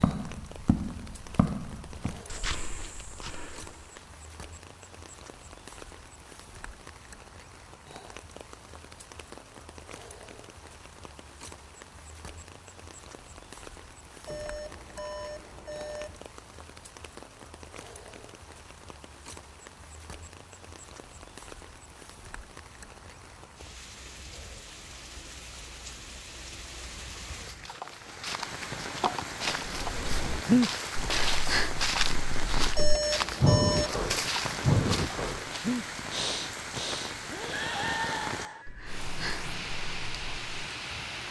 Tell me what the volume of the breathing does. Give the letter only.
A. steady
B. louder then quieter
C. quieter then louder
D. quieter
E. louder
D.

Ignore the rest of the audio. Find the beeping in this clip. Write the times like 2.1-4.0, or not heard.
14.2-16.2, 32.8-34.0.